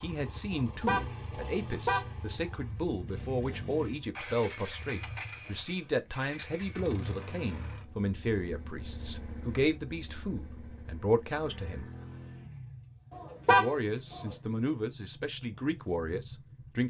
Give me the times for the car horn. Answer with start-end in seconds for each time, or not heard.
0.5-2.1, 13.1-14.3.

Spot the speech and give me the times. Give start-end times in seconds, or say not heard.
0.0-11.9, 13.4-16.8.